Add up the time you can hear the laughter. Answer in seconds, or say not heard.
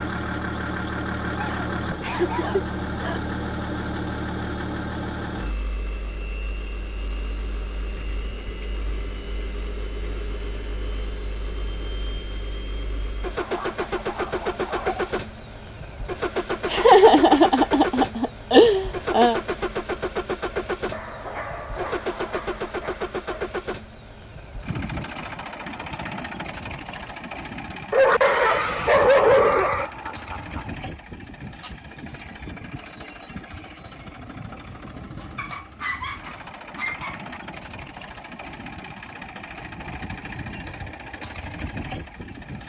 5 s.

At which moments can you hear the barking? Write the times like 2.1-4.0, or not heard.
1.4-3.2, 13.4-15.2, 20.9-23.5, 27.9-29.9, 35.4-37.4.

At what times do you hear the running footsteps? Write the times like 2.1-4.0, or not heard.
not heard.